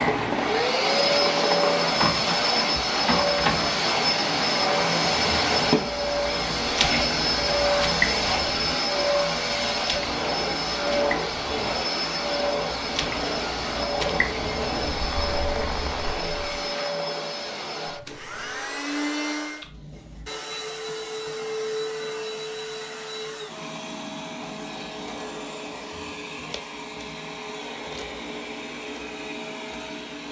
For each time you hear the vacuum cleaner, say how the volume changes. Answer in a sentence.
You can hear the vacuum cleaner from 0.0 to 30.2 s, getting quieter.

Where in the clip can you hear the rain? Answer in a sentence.
The rain can be heard from 0.0 to 16.6 s.